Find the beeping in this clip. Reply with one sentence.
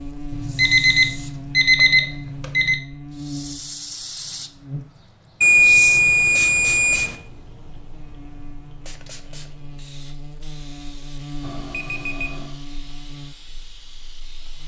The beeping can be heard from 0.3 to 2.8 s, from 5.4 to 7.2 s and from 11.4 to 12.6 s.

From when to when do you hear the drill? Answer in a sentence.
You can't hear the drill here.